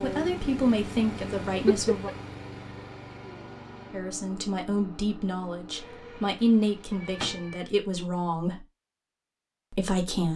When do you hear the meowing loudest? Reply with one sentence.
The loudest moment of the meowing is at 2 seconds.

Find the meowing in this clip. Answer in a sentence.
The meowing can be heard from 1.5 to 2.1 s and from 6.9 to 7.7 s.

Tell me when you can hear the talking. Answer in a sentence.
The talking can be heard from 0.0 to 2.1 s, from 3.9 to 8.7 s and from 9.7 to 10.3 s.